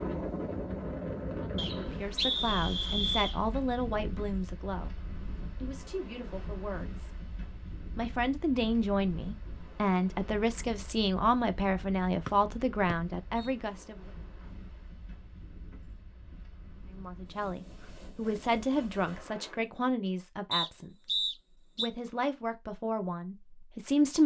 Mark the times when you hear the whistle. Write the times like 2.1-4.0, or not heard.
1.6-3.4, 12.2-13.5, 20.5-21.9.